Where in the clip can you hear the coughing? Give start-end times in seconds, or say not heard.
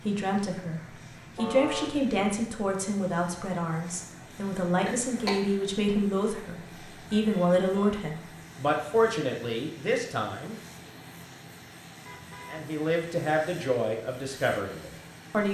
4.8-5.7.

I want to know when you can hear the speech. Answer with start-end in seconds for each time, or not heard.
0.0-10.9, 12.5-15.4.